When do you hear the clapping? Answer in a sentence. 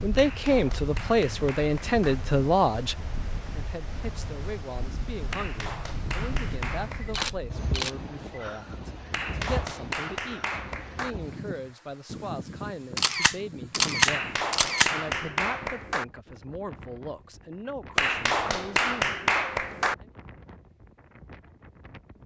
The clapping can be heard from 0.1 to 2.1 s, from 5.3 to 7.3 s, from 9.1 to 11.2 s, from 14.1 to 16.1 s and from 17.9 to 19.9 s.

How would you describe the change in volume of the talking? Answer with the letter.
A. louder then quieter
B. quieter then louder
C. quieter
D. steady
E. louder
C.